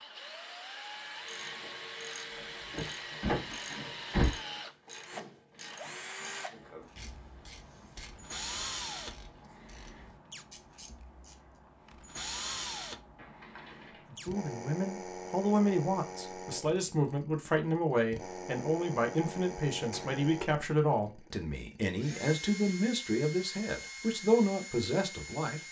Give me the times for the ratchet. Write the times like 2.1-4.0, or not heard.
0.9-11.6.